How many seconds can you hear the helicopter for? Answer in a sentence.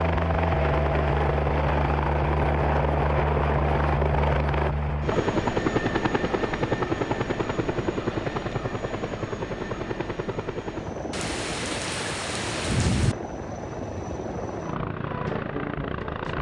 You can hear the helicopter for 16 seconds altogether.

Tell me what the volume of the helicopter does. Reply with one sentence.
The volume of the helicopter goes down.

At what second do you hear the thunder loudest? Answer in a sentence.
The volume of the thunder peaks at 13 seconds.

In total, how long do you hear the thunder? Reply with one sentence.
The thunder can be heard for 2 seconds in total.